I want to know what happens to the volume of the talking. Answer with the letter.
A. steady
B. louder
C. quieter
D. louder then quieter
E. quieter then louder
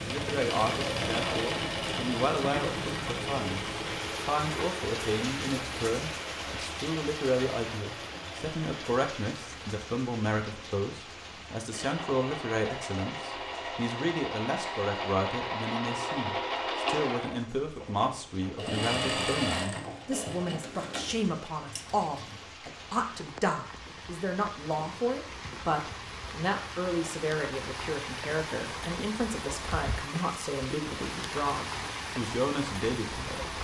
A.